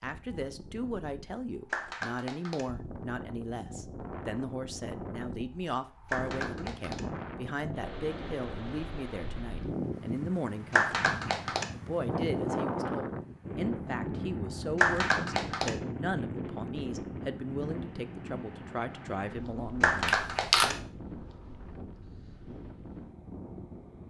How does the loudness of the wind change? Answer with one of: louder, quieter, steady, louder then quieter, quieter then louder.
louder then quieter.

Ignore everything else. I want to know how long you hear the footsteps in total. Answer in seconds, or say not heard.
not heard.